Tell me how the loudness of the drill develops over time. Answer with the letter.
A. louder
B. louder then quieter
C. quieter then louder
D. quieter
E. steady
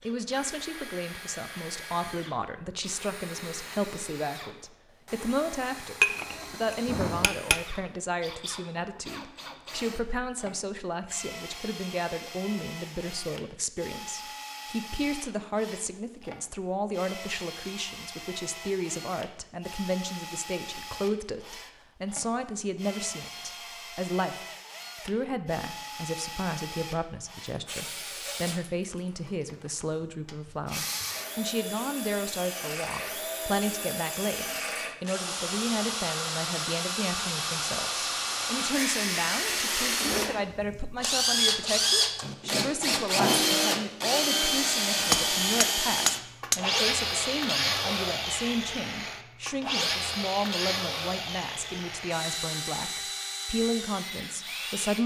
A.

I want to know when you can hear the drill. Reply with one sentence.
The drill can be heard from 0.0 to 55.0 s.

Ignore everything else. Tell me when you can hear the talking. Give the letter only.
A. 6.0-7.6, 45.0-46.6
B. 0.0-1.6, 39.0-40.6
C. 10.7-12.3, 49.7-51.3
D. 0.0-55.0
D.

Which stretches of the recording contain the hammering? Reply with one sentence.
The hammering can be heard from 6.0 to 7.6 s and from 45.0 to 46.6 s.